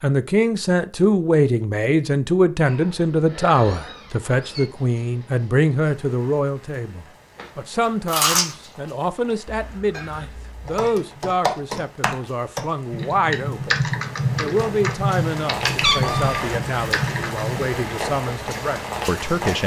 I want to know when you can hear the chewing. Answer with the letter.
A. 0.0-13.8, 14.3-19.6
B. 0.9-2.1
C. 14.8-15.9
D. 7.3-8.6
D.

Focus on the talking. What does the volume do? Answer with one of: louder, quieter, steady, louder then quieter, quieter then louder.
quieter.